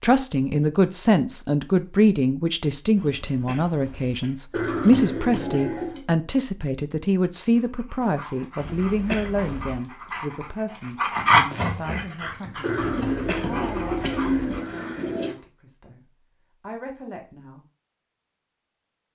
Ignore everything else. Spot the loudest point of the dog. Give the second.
11 s.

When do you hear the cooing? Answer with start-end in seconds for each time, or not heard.
4.5-6.0, 12.6-15.3.